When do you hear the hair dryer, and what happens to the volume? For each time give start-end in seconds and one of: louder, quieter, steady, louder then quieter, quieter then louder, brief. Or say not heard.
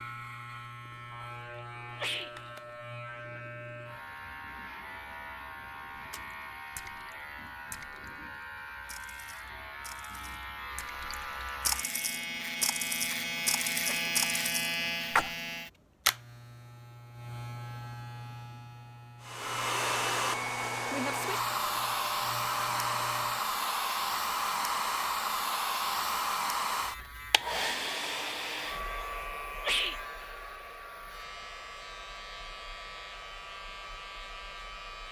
19.2-35.0 quieter.